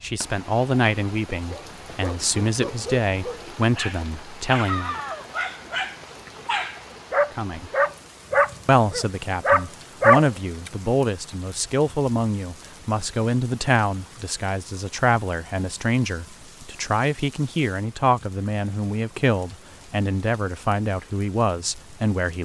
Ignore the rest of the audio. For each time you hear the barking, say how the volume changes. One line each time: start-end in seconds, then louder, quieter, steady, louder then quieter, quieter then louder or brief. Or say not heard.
1.5-10.7 louder.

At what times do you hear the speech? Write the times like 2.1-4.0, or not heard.
0.0-5.0, 7.3-7.7, 8.7-22.3.